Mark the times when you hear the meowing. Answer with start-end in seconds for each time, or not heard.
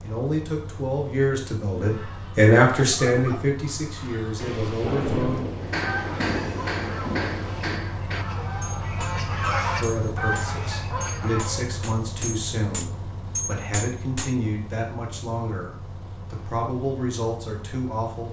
not heard.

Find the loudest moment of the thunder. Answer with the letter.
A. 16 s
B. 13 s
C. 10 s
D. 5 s
D.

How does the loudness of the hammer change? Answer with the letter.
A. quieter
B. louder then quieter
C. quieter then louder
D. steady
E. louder
C.